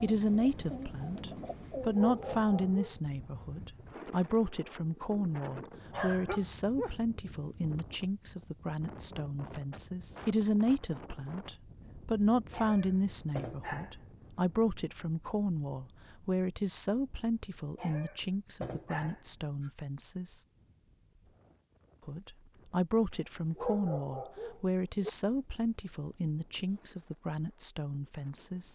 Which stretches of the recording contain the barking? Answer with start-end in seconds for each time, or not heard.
1.9-3.0, 5.9-7.0, 12.5-13.9, 17.8-19.7, 23.6-25.1.